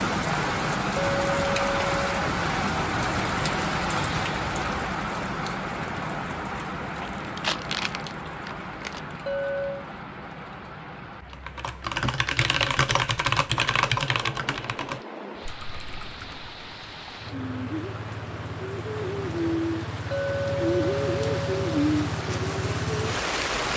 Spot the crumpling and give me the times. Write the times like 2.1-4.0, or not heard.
7.0-9.0.